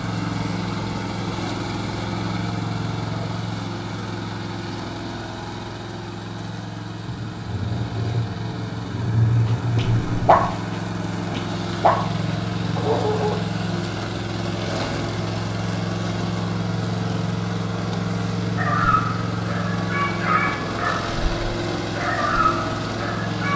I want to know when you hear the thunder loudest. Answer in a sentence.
The volume of the thunder peaks at 9 seconds.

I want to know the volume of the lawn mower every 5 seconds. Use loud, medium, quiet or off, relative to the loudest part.
loud, medium, loud, loud, loud.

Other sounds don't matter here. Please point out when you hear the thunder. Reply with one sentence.
You can hear the thunder from 7.0 to 10.5 s.